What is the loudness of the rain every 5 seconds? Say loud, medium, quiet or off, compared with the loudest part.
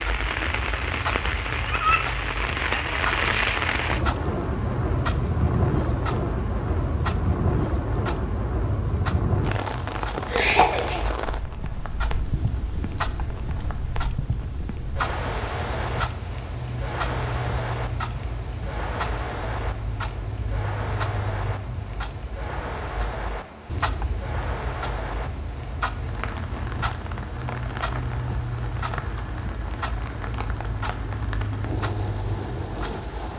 loud, loud, medium, medium, medium, medium, medium.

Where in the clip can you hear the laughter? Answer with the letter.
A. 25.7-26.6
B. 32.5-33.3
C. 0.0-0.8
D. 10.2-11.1
D.